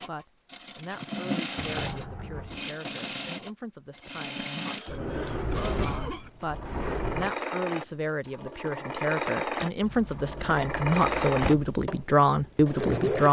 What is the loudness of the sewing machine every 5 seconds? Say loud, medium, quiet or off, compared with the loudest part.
medium, loud, loud.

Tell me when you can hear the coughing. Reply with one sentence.
The coughing can be heard from 4.0 to 6.3 s.